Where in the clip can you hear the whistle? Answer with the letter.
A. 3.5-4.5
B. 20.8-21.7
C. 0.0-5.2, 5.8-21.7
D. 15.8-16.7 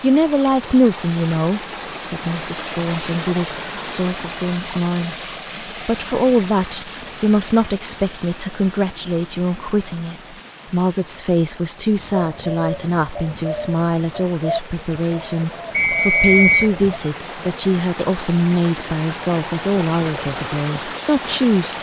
D.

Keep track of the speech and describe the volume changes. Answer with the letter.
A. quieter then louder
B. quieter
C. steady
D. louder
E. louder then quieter
C.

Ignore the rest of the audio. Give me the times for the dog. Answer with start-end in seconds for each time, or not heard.
not heard.